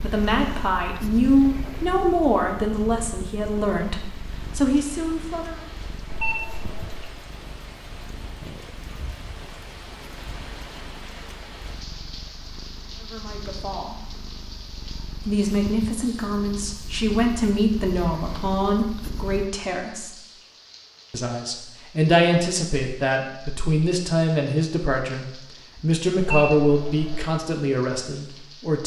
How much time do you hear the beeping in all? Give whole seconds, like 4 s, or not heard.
2 s.